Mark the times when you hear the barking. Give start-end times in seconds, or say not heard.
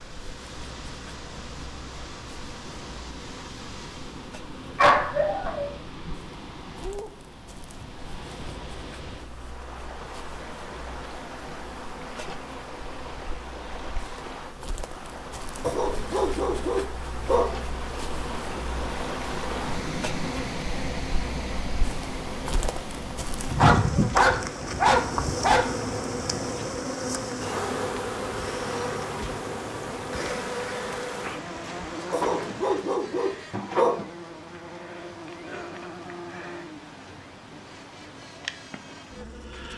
4.8-6.2, 15.6-17.6, 23.5-25.7, 32.1-34.0.